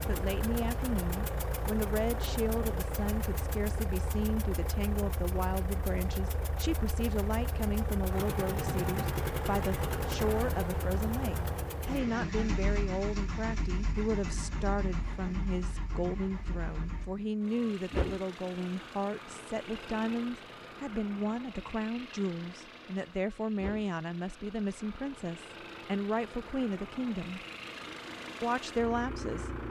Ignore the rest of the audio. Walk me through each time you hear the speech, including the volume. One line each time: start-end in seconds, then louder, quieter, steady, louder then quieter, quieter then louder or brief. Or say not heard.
0.1-27.4 steady
28.4-29.5 brief.